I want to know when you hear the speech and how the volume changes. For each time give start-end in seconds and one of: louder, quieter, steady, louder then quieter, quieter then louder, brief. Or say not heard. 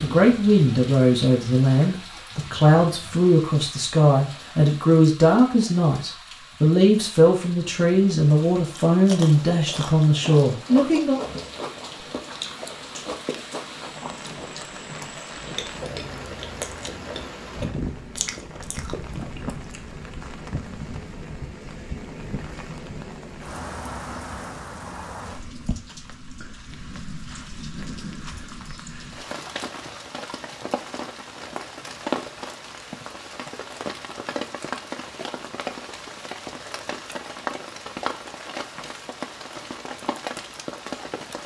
0.0-11.2 steady.